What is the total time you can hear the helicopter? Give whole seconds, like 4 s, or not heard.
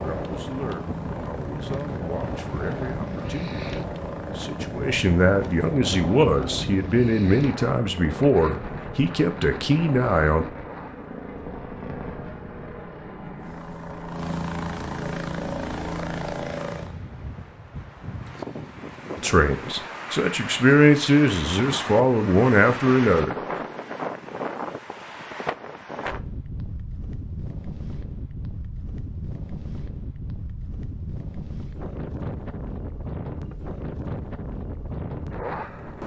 17 s.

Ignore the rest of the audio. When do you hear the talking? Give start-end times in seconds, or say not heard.
0.0-10.4, 19.1-23.4.